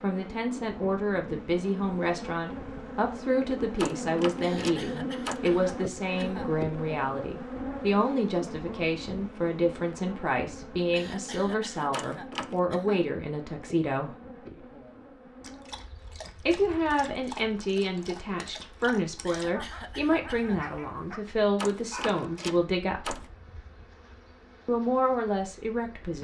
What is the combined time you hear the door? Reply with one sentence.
You can hear the door for 4 seconds altogether.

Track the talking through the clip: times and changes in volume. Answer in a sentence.
You can hear the talking from 0.0 to 14.2 s, at a steady volume; from 16.4 to 23.2 s, at a steady volume; and briefly from 24.6 to 26.1 s.